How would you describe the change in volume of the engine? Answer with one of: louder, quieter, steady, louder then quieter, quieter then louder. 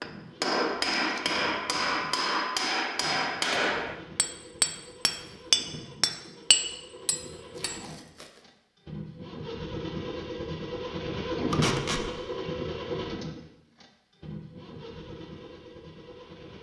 louder then quieter.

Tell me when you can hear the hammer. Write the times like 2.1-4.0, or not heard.
0.0-7.8.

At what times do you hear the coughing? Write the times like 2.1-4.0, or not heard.
not heard.